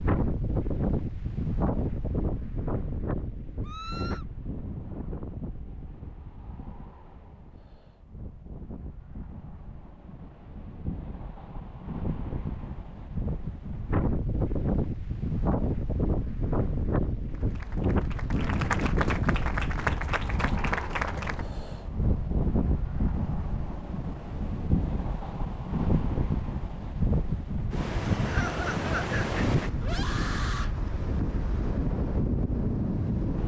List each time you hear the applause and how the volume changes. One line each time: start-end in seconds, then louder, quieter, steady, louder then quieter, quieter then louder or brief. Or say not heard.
17.2-21.4 louder.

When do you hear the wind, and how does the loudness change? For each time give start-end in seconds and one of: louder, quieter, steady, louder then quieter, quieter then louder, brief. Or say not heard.
0.0-33.4 quieter then louder.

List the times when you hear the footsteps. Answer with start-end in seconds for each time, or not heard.
not heard.